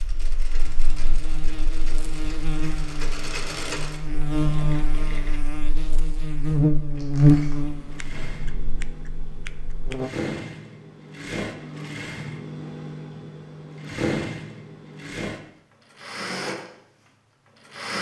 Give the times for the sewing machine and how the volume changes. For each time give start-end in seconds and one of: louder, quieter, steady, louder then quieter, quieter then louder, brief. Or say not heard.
0.0-5.4 louder then quieter
7.6-17.9 louder.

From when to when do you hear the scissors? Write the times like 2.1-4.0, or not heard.
8.0-10.0.